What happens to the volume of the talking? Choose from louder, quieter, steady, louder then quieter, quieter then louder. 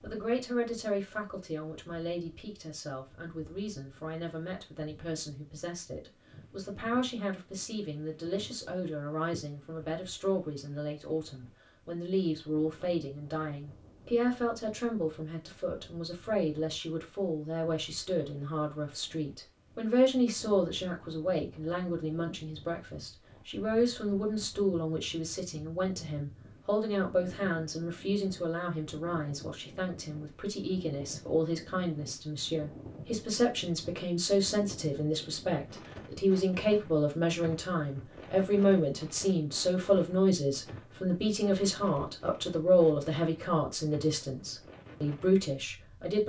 louder.